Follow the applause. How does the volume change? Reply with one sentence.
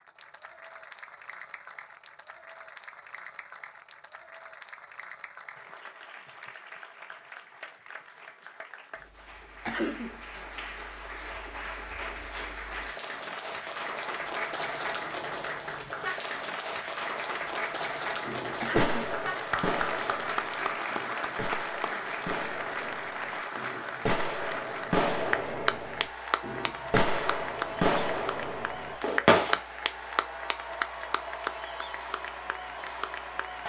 The volume of the applause goes up.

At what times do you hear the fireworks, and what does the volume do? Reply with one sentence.
You can hear the fireworks from 18.2 to 29.6 s, getting quieter then louder.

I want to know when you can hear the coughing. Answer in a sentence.
The coughing can be heard from 9.7 to 10.2 s and from 18.6 to 19.1 s.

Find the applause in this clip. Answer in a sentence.
You can hear the applause from 0.0 to 33.6 s.